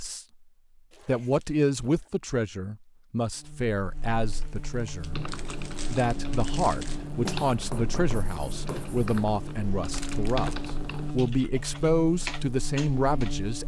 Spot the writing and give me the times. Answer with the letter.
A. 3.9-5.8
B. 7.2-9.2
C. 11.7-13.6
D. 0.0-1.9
B.